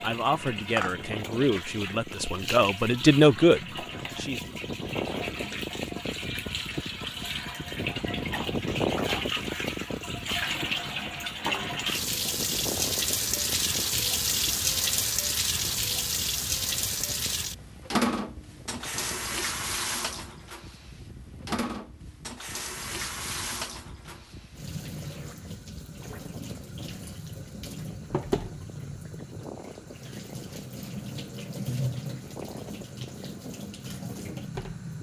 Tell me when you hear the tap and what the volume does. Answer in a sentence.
You can hear the tap from 0.0 to 34.9 s, getting louder then quieter.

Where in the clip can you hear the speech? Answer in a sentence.
The speech can be heard from 0.0 to 4.4 s.